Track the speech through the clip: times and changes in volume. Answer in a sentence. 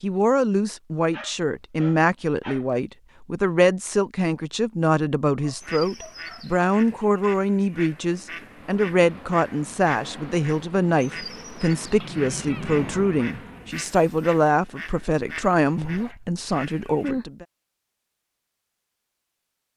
The speech can be heard from 0.0 to 17.4 s, at a steady volume.